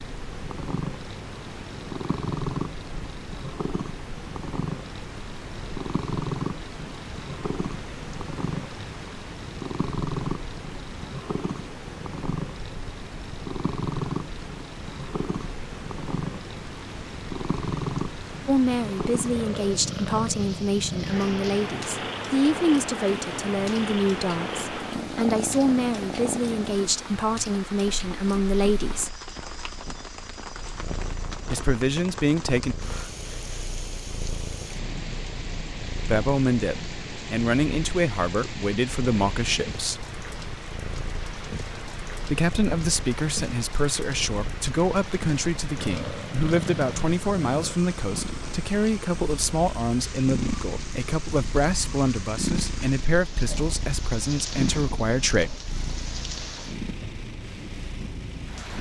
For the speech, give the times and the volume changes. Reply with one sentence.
The speech can be heard from 18.4 to 29.2 s, at a steady volume; briefly from 31.4 to 32.8 s; from 36.0 to 40.0 s, at a steady volume; and from 42.2 to 55.5 s, at a steady volume.